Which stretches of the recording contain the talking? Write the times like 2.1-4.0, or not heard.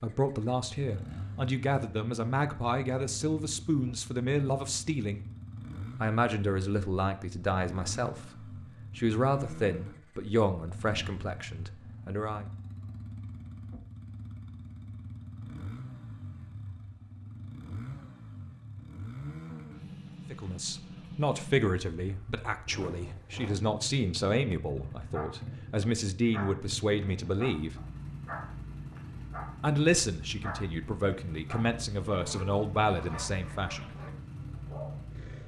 0.0-5.2, 6.0-12.4, 20.3-27.8, 29.6-33.9.